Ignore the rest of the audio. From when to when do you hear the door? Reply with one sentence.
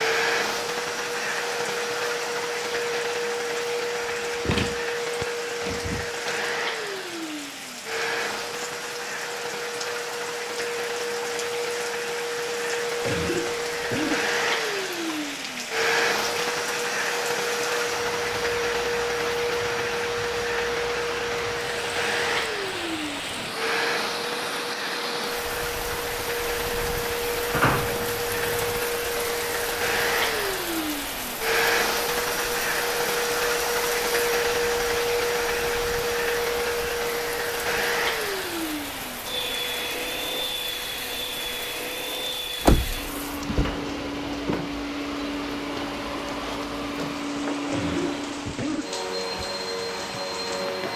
You can hear the door from 4.5 to 6.2 s, from 27.5 to 28.8 s and from 42.6 to 43.8 s.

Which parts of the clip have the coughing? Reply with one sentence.
The coughing can be heard from 13.0 to 14.3 s and from 47.7 to 49.0 s.